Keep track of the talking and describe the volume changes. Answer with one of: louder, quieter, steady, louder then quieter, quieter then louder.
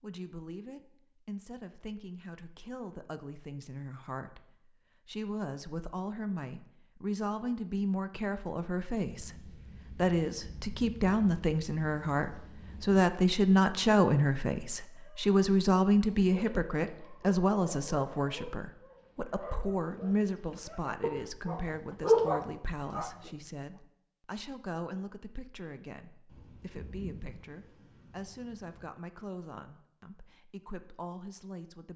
louder then quieter.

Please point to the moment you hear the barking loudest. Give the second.
22 s.